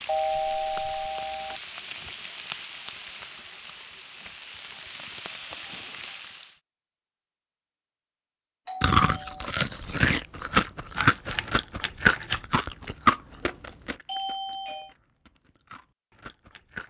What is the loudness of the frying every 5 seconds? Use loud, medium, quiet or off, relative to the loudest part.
loud, loud, off, off.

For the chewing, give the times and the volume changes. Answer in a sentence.
You can hear the chewing from 8.8 to 16.8 s, getting quieter.